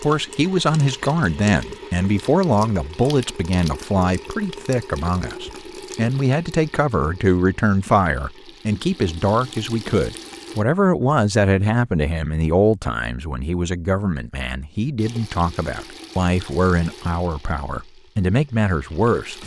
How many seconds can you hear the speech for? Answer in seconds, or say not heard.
19 s.